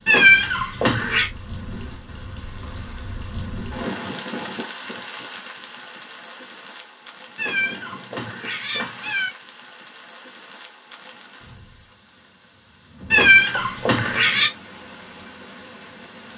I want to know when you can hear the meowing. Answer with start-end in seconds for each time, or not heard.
0.1-1.3, 7.3-9.3, 13.1-14.5.